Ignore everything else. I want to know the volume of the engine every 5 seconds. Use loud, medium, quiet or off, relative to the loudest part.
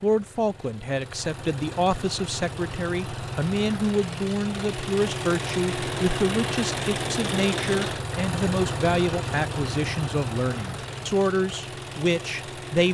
medium, loud, medium.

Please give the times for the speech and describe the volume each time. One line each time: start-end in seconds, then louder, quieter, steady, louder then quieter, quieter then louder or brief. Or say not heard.
0.0-12.8 steady.